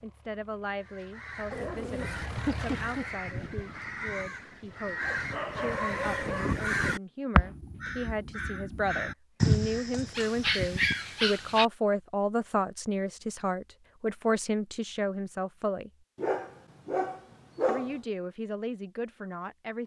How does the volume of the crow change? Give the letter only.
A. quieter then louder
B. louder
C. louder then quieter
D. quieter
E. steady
B.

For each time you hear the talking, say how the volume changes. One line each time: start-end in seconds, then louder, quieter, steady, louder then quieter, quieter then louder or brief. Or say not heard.
0.0-15.9 louder
17.6-19.8 brief.